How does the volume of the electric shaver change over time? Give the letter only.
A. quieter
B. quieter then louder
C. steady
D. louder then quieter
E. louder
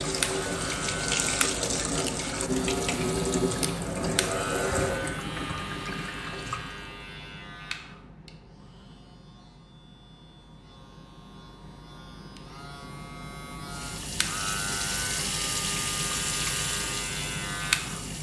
B.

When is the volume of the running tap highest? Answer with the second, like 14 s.
3 s.